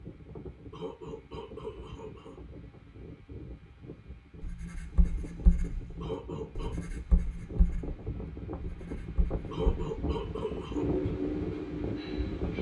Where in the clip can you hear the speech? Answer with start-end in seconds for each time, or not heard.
not heard.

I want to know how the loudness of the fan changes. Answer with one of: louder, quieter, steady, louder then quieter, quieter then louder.
louder.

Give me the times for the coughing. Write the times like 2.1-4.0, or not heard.
0.7-2.4, 6.0-6.8, 9.5-10.8.